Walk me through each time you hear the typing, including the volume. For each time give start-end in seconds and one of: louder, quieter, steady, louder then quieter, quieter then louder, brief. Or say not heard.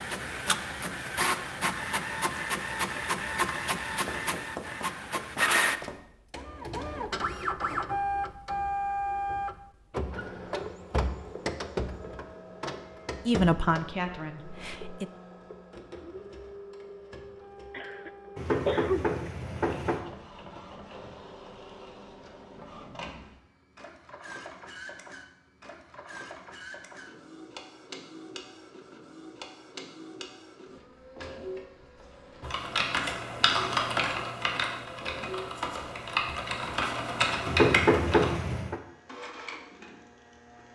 32.4-38.4 quieter then louder.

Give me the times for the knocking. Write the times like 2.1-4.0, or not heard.
4.0-6.0, 18.4-20.0, 37.5-38.8.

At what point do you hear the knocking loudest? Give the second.
38 s.